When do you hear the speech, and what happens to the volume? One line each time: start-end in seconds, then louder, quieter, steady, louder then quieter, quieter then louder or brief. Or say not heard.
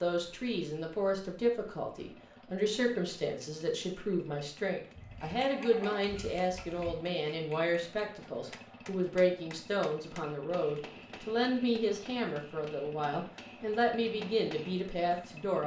0.0-15.6 steady.